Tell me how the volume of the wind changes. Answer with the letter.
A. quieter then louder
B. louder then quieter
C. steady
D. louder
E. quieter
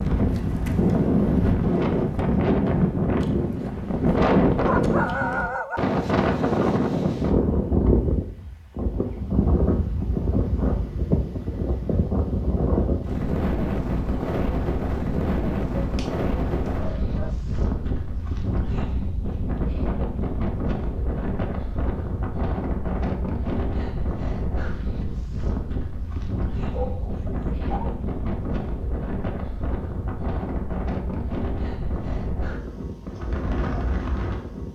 E.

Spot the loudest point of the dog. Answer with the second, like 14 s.
5 s.